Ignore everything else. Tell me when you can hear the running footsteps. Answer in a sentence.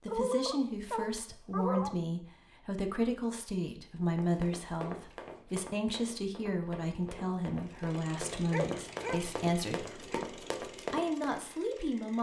You can hear the running footsteps from 4.0 to 11.3 s.